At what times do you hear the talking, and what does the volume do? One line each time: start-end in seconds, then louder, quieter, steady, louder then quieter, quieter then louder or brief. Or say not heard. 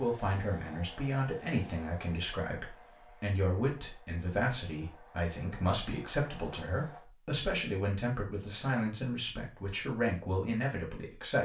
0.0-11.3 steady.